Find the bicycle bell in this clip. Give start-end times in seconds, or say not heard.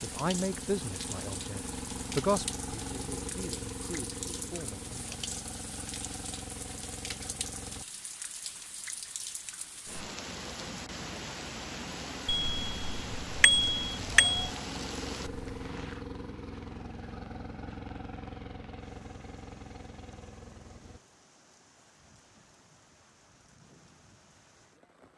12.2-14.5.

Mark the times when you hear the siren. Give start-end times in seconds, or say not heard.
not heard.